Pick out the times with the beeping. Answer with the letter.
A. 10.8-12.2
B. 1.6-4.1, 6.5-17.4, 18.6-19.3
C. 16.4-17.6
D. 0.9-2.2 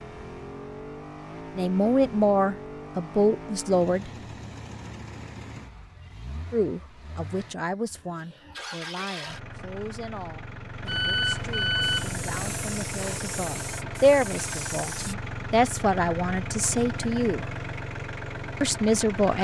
A.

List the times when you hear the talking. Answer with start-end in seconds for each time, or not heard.
1.6-4.1, 6.5-17.4, 18.6-19.3.